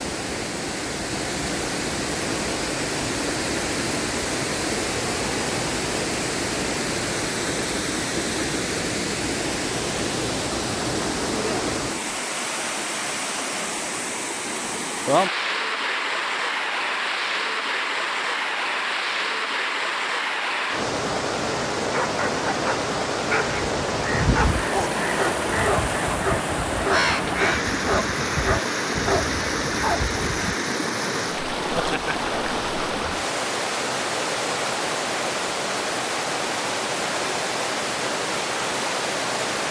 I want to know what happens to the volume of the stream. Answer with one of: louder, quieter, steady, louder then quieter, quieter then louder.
steady.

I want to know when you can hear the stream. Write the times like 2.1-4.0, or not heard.
0.0-39.6.